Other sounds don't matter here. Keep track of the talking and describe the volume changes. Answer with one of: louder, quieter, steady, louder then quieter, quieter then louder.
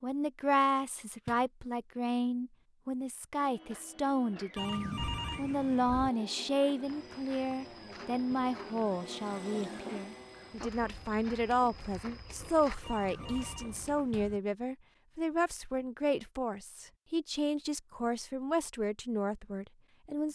steady.